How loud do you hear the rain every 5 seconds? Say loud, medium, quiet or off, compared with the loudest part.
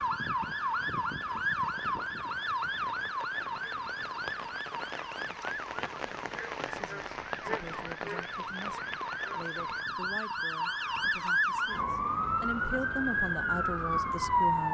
medium, loud, off.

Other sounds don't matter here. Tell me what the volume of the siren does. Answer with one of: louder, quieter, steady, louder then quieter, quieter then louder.
quieter then louder.